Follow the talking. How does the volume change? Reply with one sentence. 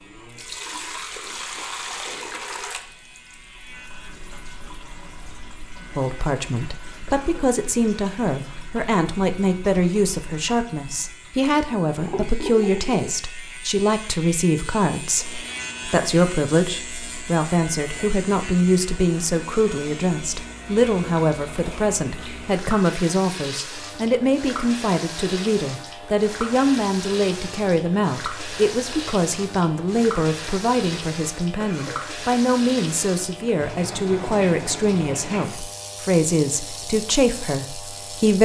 The loudness of the talking stays about the same.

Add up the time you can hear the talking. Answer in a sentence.
The talking can be heard for 32 seconds in total.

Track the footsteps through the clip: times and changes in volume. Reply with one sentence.
You can't hear the footsteps here.